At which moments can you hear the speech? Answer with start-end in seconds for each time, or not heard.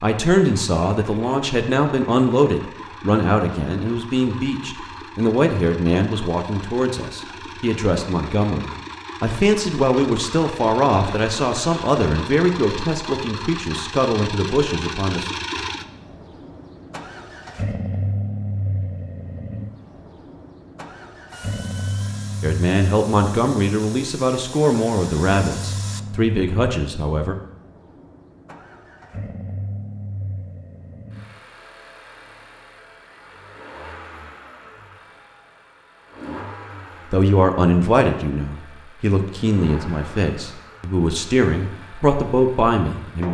0.0-15.3, 22.4-27.4, 37.1-43.2.